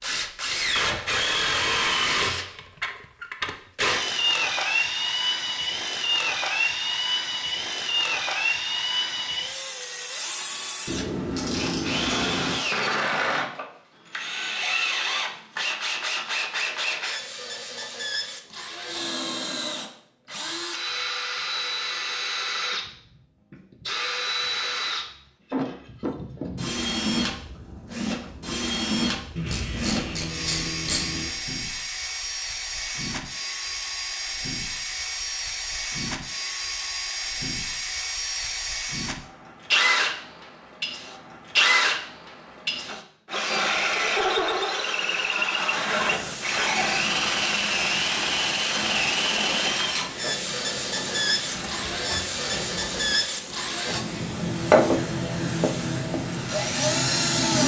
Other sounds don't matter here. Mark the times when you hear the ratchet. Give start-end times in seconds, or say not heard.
10.8-12.6, 29.4-31.3, 51.5-52.9.